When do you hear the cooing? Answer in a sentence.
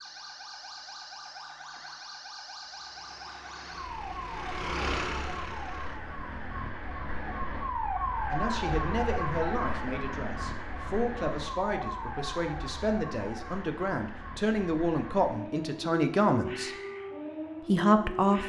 You can't hear the cooing here.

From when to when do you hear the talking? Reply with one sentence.
The talking can be heard from 8.3 to 16.8 s and from 17.6 to 18.4 s.